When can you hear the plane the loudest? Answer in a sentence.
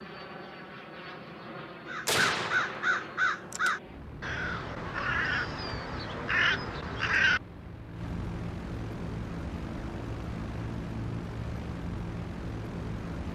The loudest moment of the plane is at 11 seconds.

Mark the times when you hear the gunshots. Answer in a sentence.
You can hear the gunshots from 2.0 to 3.8 s.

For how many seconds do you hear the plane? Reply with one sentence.
The plane can be heard for 13 seconds in total.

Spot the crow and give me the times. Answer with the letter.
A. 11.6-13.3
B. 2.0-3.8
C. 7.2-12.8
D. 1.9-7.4
D.